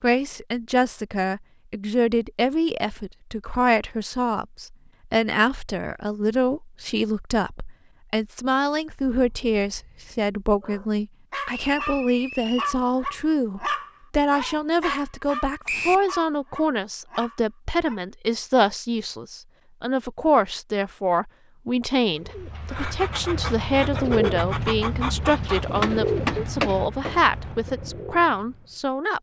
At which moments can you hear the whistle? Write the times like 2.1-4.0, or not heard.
11.4-12.8, 15.7-16.1.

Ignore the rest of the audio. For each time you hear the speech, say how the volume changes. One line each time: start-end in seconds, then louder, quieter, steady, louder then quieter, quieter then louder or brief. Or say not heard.
0.0-29.1 steady.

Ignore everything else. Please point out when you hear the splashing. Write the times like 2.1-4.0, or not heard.
not heard.